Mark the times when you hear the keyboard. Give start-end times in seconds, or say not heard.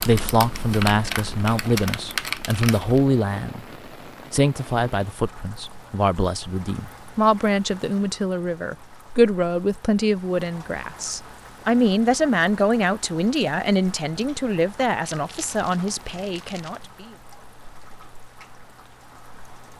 0.0-3.0.